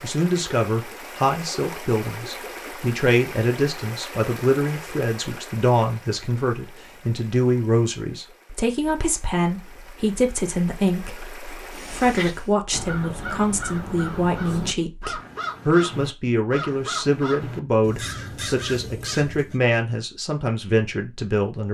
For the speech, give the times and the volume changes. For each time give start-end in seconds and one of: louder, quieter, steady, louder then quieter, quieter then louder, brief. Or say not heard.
0.0-21.6 steady.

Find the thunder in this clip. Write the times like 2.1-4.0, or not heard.
not heard.